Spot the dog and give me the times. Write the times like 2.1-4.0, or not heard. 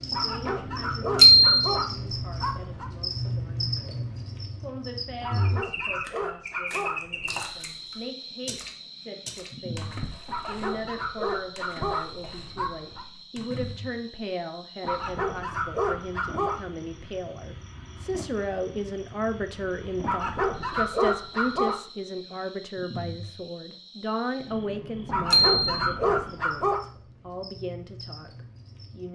0.1-2.9, 5.2-7.4, 10.2-13.1, 14.8-16.6, 20.0-21.8, 25.1-26.8.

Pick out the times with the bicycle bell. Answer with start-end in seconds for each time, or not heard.
1.1-1.8, 25.3-25.8.